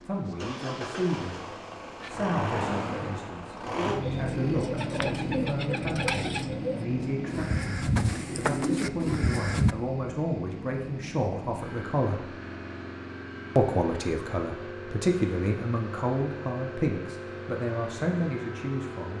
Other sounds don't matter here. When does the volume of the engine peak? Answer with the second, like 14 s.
4 s.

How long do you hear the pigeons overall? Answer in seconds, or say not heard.
6 s.